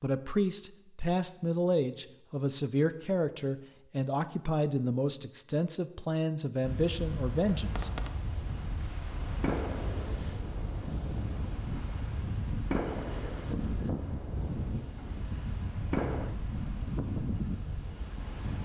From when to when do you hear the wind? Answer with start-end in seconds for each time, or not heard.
6.6-18.5.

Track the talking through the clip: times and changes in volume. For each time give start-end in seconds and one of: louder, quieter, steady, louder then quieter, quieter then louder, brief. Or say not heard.
0.0-7.9 steady.